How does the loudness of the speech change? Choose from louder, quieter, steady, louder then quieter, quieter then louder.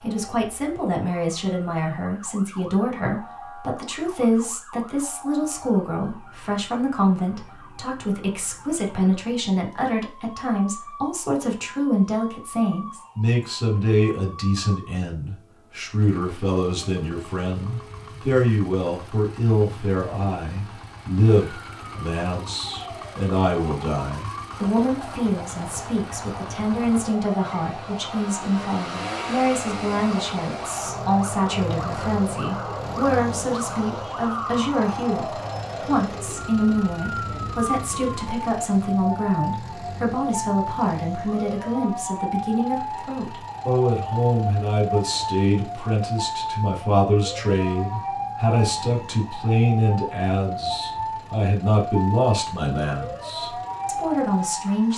steady.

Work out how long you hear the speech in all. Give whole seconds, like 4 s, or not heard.
55 s.